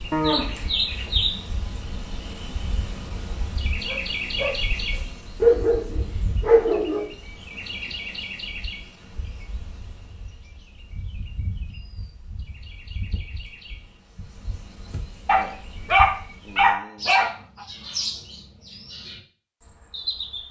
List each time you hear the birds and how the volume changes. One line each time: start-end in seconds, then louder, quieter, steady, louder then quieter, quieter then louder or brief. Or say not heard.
0.0-20.4 quieter then louder.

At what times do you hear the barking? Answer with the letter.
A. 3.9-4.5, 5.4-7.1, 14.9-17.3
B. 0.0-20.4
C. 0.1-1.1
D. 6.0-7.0
A.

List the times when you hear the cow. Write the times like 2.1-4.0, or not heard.
0.1-1.1.